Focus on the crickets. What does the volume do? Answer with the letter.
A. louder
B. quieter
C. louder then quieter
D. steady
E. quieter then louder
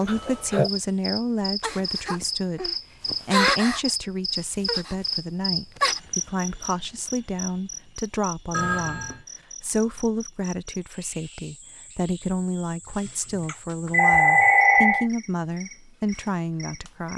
B.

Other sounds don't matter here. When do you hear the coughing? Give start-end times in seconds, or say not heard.
not heard.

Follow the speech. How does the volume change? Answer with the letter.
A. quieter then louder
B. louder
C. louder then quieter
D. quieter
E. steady
E.